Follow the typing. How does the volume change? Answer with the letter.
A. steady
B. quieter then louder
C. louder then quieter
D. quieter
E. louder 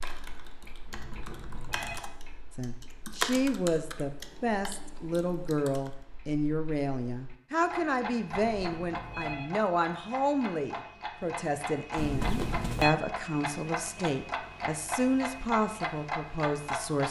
C.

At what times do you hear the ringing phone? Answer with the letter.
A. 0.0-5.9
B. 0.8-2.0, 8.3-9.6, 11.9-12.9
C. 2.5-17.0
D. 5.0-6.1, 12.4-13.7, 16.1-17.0
B.